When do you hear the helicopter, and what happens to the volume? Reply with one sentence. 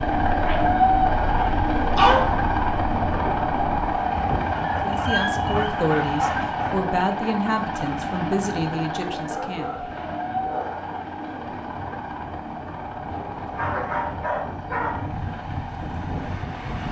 You can hear the helicopter from 0.0 to 16.8 s, getting quieter.